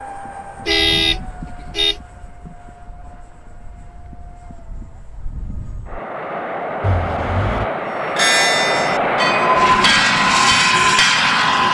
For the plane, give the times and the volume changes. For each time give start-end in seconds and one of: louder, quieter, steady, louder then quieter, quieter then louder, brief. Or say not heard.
0.0-11.6 quieter then louder.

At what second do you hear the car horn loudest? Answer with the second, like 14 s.
1 s.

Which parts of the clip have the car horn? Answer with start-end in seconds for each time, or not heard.
0.7-1.9, 6.8-7.7.